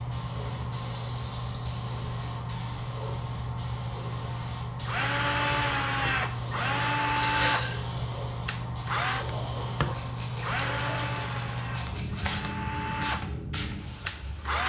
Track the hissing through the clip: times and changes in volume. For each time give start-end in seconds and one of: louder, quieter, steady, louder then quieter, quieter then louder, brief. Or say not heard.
0.0-14.6 steady.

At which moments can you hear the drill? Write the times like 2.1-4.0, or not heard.
4.8-14.6.